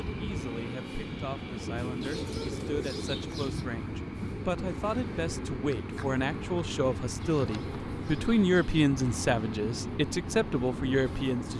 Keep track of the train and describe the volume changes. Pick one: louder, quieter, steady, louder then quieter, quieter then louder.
steady.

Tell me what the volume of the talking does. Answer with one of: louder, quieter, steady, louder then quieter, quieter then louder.
louder.